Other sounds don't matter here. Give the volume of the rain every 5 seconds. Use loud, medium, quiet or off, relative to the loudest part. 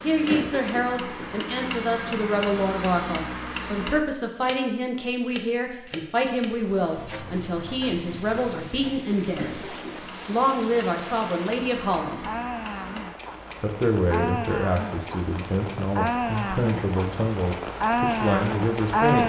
off, quiet, medium, loud.